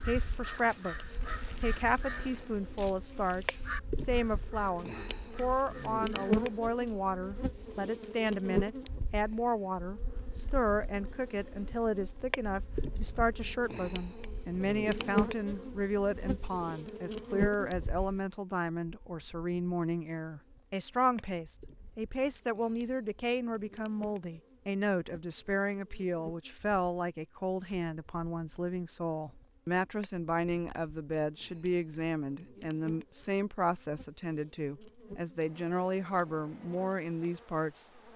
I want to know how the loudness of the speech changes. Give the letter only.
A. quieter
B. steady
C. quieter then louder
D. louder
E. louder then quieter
B.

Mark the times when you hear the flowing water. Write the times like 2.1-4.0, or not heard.
not heard.